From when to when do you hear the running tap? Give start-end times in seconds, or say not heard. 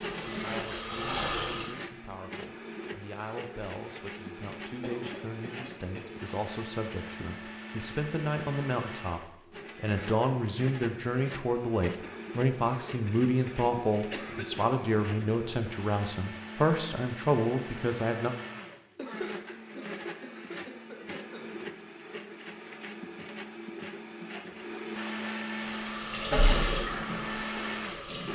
0.0-1.7, 25.6-28.3.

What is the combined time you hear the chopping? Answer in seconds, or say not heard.
not heard.